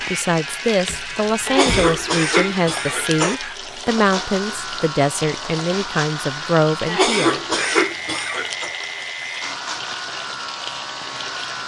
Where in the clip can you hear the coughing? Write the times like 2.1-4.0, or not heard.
1.4-3.4, 6.8-8.7.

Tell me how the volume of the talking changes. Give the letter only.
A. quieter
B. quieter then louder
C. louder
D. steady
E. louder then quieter
D.